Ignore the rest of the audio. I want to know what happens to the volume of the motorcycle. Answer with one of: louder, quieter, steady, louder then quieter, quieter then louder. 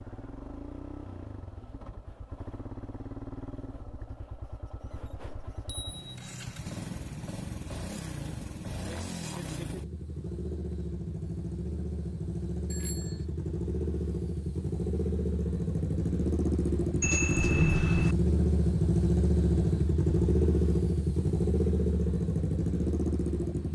louder.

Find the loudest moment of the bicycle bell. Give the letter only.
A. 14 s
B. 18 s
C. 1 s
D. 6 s
B.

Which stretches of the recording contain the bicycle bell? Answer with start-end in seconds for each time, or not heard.
5.5-6.2, 12.7-13.2, 17.0-18.1.